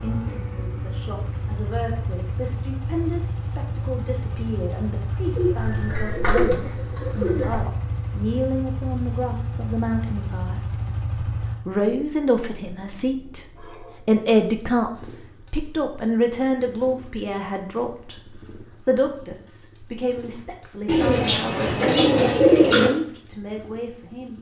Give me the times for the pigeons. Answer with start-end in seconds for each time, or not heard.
5.3-7.6, 20.9-22.9.